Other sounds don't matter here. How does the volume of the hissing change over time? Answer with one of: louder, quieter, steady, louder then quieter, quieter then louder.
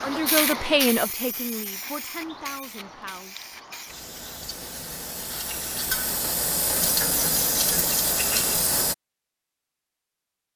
quieter then louder.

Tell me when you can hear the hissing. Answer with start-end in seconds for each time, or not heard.
0.0-8.9.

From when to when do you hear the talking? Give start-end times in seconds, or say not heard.
0.0-3.4.